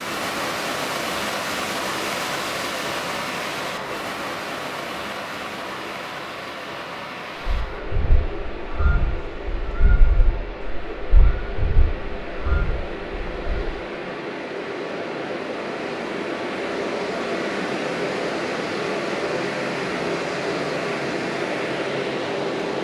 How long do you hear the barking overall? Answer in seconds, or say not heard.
not heard.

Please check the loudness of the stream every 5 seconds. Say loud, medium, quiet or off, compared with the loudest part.
loud, medium, medium, loud, loud.